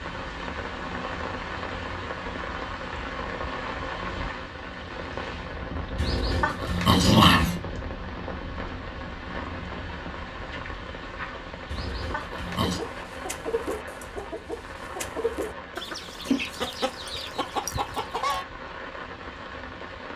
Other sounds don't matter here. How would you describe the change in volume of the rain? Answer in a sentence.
The volume of the rain goes down.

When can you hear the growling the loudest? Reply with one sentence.
The volume of the growling peaks at 7 seconds.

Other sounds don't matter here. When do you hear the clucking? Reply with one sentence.
The clucking can be heard from 12.4 to 18.4 s.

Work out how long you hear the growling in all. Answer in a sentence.
You can hear the growling for 3 seconds altogether.